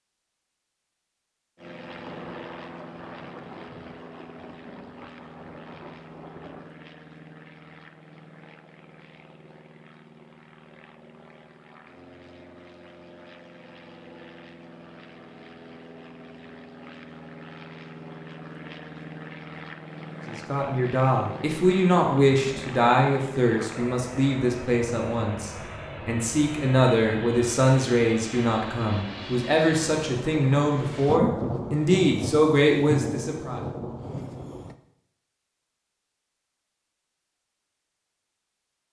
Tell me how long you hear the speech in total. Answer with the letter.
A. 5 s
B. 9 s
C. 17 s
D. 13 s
D.